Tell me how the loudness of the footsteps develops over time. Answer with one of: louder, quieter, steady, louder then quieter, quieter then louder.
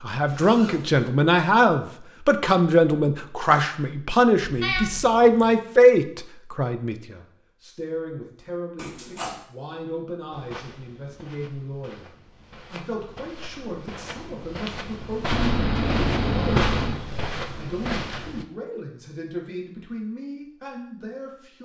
louder.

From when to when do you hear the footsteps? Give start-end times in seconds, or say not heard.
10.3-18.4.